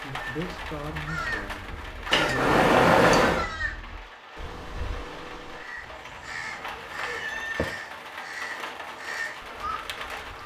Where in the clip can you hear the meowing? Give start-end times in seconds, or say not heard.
2.1-3.5, 5.8-7.7.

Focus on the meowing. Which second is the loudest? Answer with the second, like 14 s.
3 s.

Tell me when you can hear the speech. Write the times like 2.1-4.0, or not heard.
0.0-2.6.